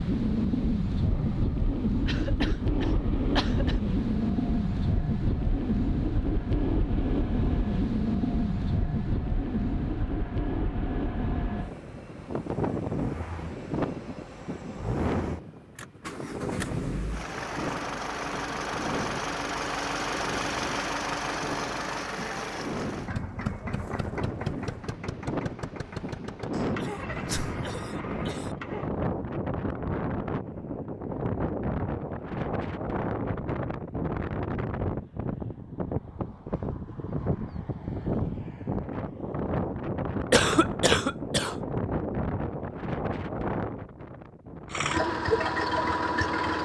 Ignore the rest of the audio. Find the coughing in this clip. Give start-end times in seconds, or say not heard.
2.0-3.8, 26.5-28.6, 40.3-41.5.